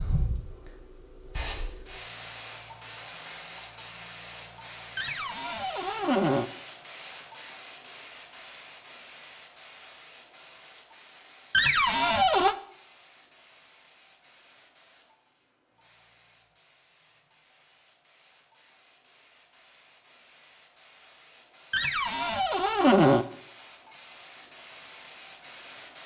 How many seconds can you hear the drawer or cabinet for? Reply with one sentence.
You can hear the drawer or cabinet for 4 seconds altogether.